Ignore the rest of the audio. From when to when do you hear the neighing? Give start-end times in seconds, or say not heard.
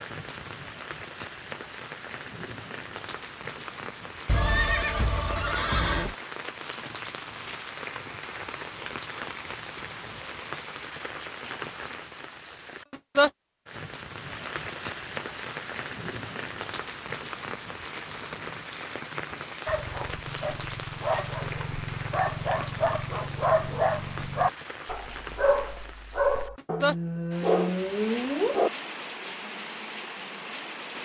4.2-6.2.